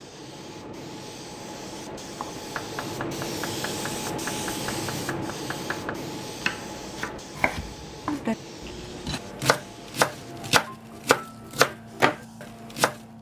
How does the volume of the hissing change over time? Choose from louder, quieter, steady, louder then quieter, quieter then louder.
louder then quieter.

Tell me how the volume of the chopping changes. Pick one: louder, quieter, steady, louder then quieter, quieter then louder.
louder.